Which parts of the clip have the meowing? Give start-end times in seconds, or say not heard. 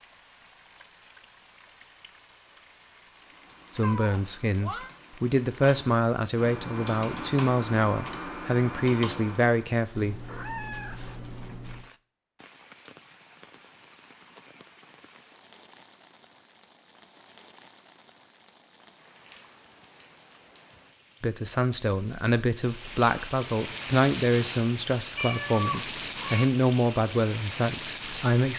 3.8-4.9, 9.9-11.8, 25.1-26.4.